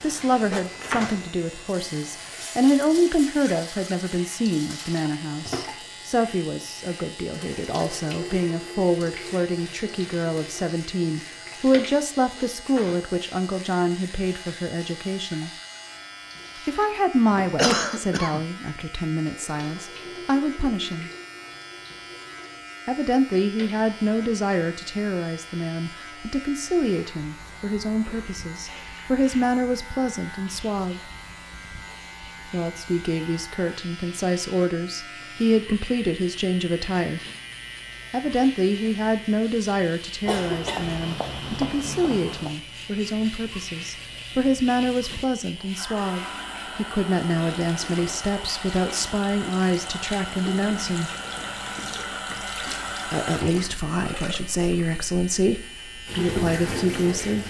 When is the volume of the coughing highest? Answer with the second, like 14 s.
18 s.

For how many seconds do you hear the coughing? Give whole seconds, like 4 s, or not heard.
3 s.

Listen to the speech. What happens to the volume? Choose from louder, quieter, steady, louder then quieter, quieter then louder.
steady.